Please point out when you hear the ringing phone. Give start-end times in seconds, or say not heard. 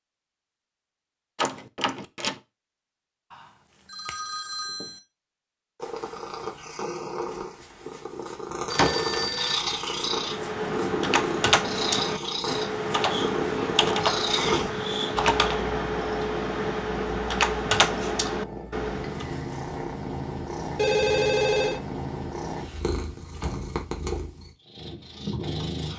3.3-5.0, 8.7-9.6, 20.8-21.8.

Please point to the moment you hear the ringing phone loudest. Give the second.
21 s.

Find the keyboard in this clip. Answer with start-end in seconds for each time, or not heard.
10.1-19.2.